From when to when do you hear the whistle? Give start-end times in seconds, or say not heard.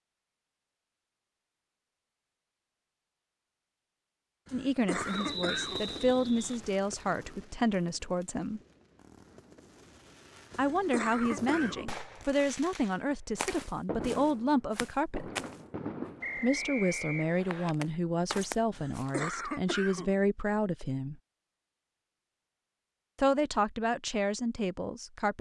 5.1-6.5, 16.2-17.8.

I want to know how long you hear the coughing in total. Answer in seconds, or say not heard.
4 s.